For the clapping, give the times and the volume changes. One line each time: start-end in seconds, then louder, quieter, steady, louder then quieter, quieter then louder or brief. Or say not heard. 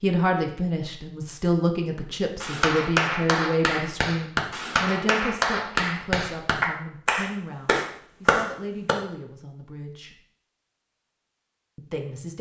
2.4-8.9 steady.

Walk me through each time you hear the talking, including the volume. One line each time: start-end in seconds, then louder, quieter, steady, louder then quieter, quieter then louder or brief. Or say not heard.
0.0-10.2 quieter
11.8-12.3 brief.